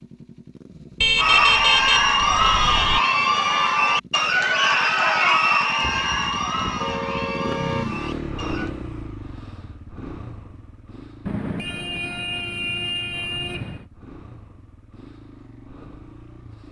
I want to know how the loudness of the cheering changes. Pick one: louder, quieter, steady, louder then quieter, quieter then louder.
quieter.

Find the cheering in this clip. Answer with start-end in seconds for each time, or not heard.
1.1-8.7.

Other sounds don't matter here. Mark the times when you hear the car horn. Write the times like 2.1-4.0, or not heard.
1.0-3.0, 5.8-7.8, 11.2-13.8.